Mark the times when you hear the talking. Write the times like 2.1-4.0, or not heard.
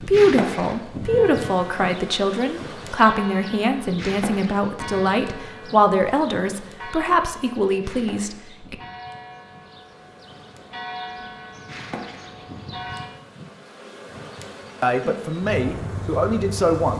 0.0-8.8, 14.8-16.9.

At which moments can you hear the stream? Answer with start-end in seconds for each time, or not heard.
not heard.